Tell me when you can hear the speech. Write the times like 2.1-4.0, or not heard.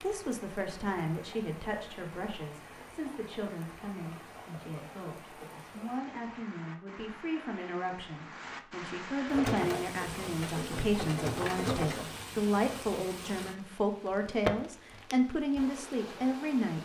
0.0-16.7.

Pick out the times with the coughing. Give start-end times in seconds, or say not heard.
not heard.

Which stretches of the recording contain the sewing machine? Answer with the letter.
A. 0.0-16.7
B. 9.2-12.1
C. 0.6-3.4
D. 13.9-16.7
B.